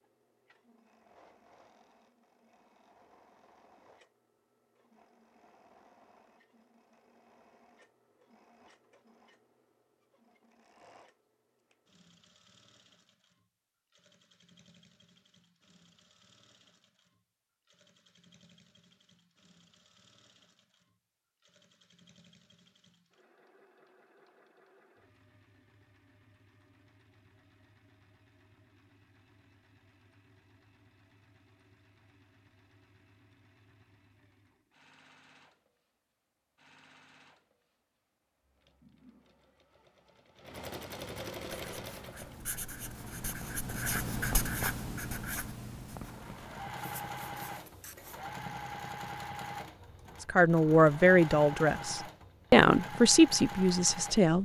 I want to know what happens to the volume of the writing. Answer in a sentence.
The volume of the writing goes up, then down.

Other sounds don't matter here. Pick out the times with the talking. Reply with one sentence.
The talking can be heard from 50.2 to 54.4 s.